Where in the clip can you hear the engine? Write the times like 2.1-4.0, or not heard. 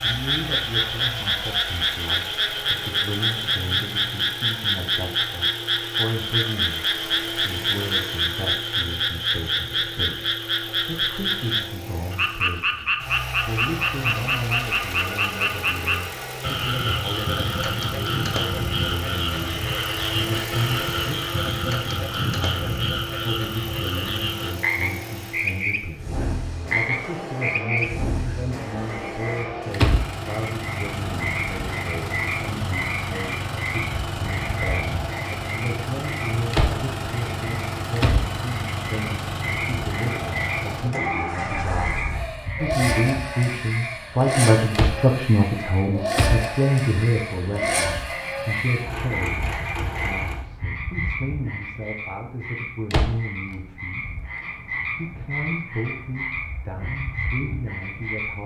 0.0-50.5.